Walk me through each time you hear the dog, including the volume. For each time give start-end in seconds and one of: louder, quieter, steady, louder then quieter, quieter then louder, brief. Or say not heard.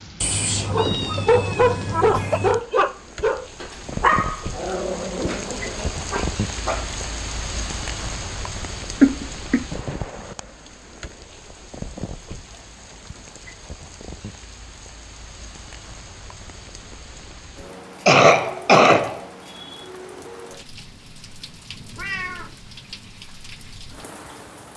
0.7-7.0 quieter.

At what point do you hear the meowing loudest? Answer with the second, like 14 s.
1 s.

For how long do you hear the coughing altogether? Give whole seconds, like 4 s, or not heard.
4 s.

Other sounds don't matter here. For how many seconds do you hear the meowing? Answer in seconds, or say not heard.
3 s.